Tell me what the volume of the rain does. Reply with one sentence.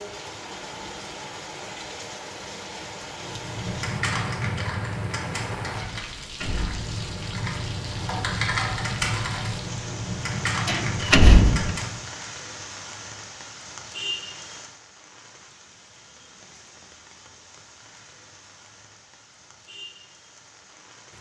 The volume of the rain goes down.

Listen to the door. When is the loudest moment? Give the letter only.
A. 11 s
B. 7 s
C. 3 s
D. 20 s
A.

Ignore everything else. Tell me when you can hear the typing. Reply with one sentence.
You can hear the typing from 3.1 to 12.1 s.